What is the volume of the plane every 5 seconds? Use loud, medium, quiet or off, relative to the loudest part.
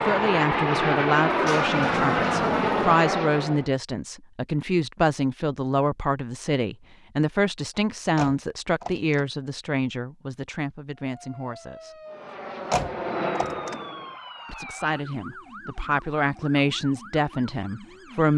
loud, off, medium, off.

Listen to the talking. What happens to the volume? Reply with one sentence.
The volume of the talking goes down, then up.